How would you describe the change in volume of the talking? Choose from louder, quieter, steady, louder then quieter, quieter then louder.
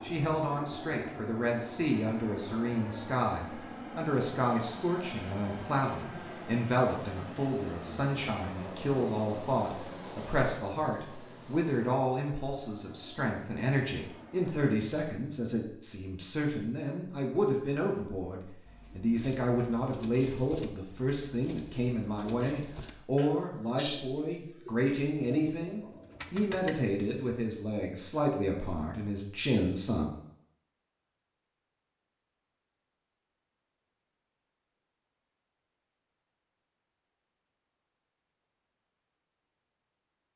steady.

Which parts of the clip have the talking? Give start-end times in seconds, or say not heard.
0.0-30.1.